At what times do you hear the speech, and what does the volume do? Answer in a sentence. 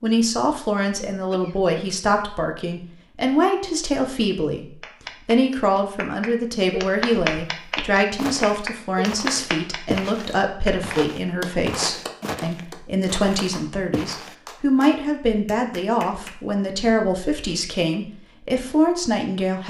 The speech can be heard from 0.0 to 19.6 s, at a steady volume.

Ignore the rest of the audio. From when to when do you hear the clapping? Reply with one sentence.
You can hear the clapping from 4.8 to 16.4 s.